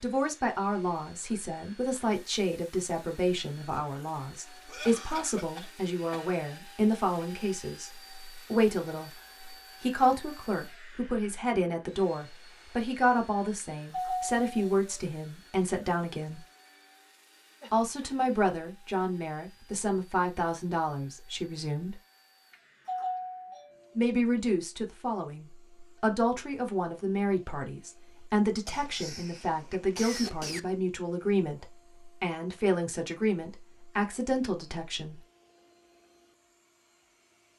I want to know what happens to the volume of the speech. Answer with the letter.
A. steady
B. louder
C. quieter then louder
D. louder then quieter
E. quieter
A.